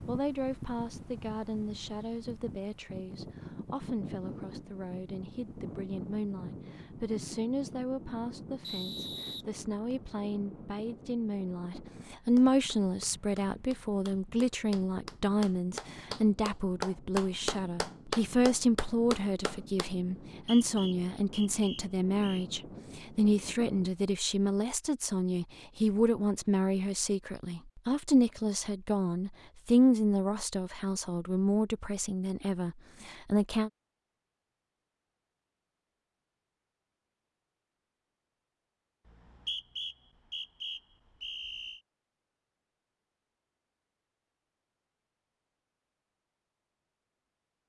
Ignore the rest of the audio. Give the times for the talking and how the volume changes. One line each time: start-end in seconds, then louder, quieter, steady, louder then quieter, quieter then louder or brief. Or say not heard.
0.1-33.7 louder.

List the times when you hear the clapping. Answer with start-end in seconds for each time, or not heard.
12.3-19.9.